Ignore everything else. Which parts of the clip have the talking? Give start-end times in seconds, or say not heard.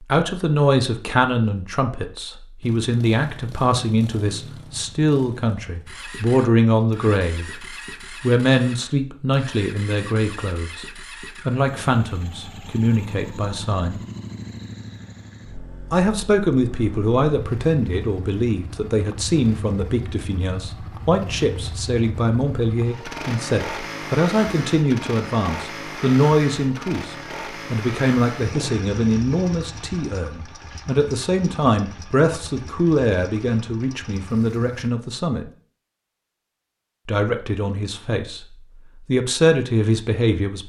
0.0-14.0, 15.9-35.5, 37.0-40.6.